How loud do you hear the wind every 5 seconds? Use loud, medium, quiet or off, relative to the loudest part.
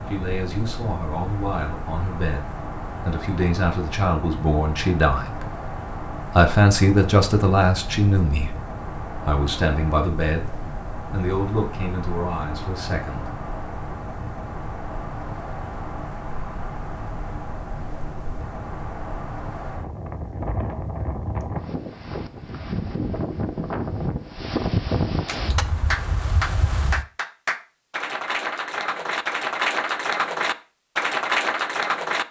medium, medium, medium, medium, loud, loud, off.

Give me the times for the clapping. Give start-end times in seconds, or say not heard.
25.2-32.2.